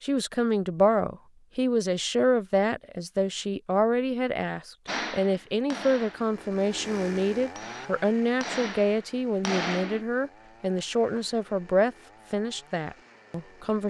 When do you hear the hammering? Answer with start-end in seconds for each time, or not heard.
4.8-10.1.